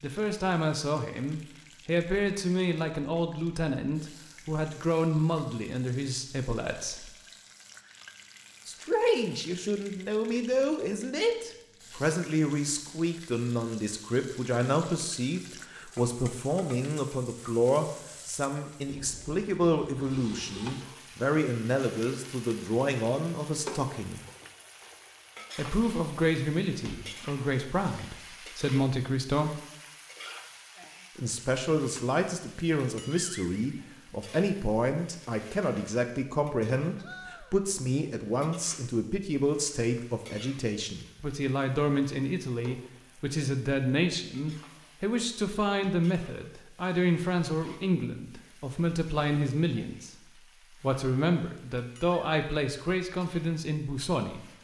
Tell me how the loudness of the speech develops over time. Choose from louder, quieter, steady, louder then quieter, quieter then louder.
steady.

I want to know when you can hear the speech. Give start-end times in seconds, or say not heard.
0.0-7.1, 8.7-24.2, 25.6-29.6, 31.1-54.5.